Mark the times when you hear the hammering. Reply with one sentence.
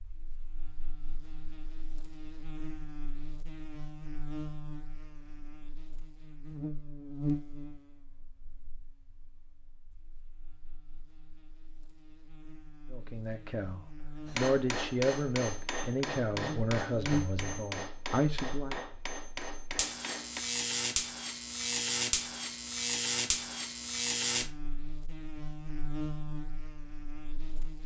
You can hear the hammering from 14.2 to 20.4 s.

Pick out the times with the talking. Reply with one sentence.
You can hear the talking from 12.9 to 18.8 s.